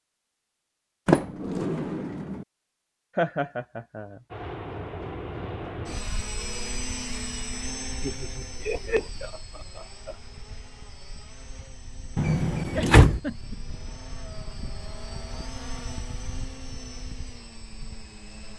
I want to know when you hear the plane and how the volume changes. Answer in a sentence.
The plane can be heard from 4.3 to 18.5 s, getting quieter then louder.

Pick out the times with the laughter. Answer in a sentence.
You can hear the laughter from 3.1 to 4.2 s, from 8.0 to 10.2 s and from 12.7 to 13.6 s.